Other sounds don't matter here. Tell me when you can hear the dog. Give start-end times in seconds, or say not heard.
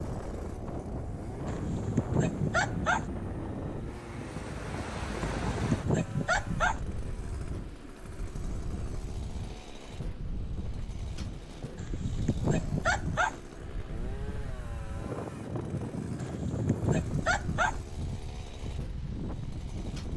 1.4-3.0, 5.2-6.8, 11.8-13.4, 16.1-17.8.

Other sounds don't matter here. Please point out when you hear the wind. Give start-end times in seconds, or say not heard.
0.0-20.1.